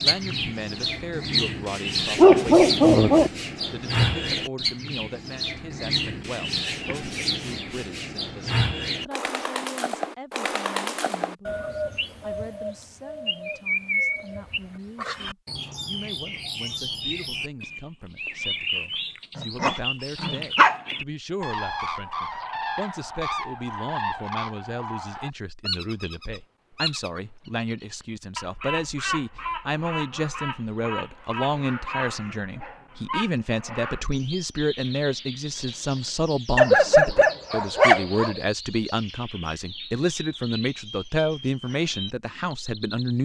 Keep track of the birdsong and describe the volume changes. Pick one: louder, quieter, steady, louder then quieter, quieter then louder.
quieter.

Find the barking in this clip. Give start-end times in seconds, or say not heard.
2.1-3.3, 19.4-20.8, 36.5-38.4.